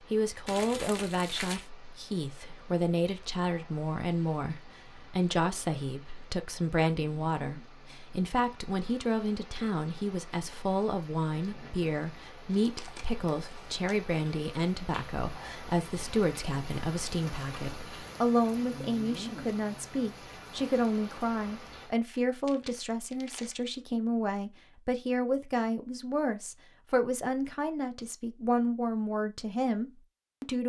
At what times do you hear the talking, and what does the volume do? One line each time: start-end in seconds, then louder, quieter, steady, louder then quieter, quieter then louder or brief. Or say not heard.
0.1-30.6 steady.